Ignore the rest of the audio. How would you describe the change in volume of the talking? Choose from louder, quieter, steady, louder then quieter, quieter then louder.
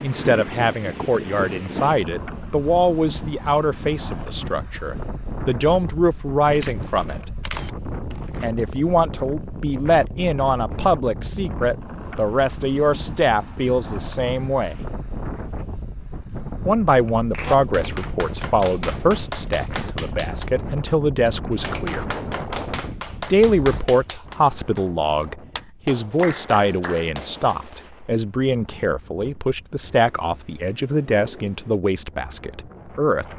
steady.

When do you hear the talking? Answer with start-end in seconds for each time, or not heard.
0.0-7.2, 8.4-14.8, 16.6-22.1, 23.2-33.2.